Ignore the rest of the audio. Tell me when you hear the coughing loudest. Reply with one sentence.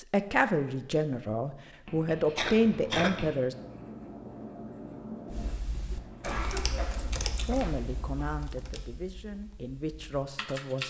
The volume of the coughing peaks at 3 seconds.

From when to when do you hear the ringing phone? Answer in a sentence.
You can't hear the ringing phone here.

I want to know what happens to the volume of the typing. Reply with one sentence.
The loudness of the typing goes down.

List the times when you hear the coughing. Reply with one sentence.
You can hear the coughing from 2.4 to 3.2 s and from 6.2 to 7.8 s.